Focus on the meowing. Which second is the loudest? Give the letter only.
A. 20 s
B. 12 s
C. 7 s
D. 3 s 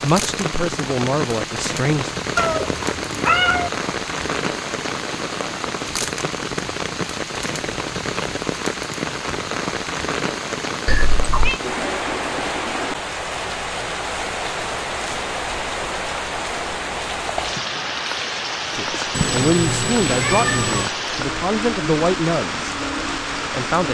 D.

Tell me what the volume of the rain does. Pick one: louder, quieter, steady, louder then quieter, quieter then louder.
steady.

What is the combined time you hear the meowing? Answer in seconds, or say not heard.
4 s.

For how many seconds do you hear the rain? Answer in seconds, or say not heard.
24 s.